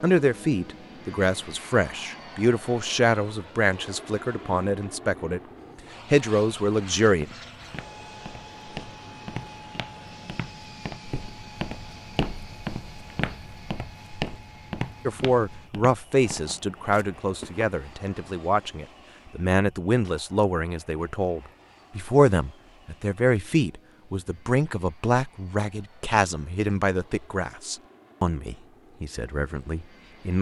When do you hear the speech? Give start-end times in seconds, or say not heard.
0.0-5.4, 6.1-7.2, 15.1-30.3.